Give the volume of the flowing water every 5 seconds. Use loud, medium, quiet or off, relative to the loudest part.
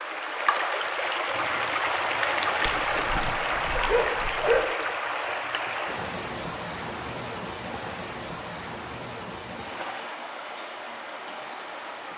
loud, medium, medium.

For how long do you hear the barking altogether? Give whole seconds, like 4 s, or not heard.
2 s.